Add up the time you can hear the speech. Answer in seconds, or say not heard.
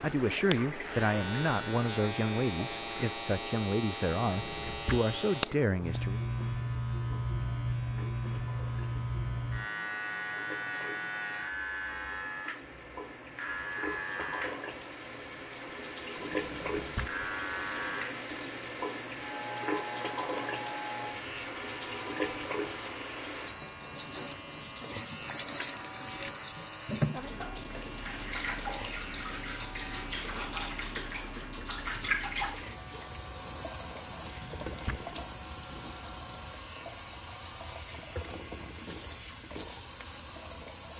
6 s.